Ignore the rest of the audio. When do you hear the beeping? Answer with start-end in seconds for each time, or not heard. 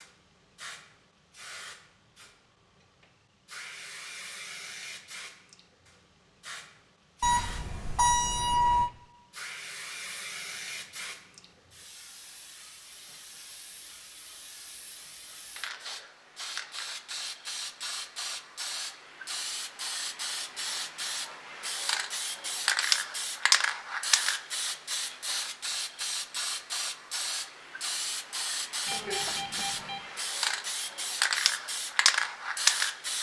7.2-8.9, 28.9-30.1.